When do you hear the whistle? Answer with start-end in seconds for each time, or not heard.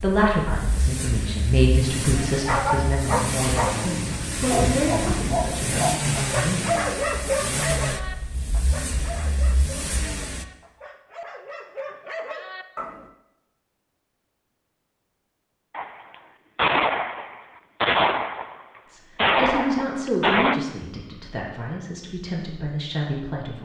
not heard.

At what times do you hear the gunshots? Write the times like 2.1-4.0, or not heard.
15.7-20.6.